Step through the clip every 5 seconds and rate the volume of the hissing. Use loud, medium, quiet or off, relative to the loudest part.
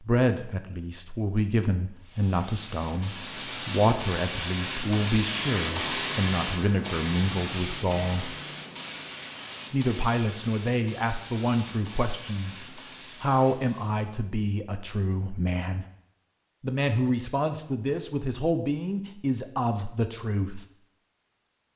loud, loud, medium, off, off.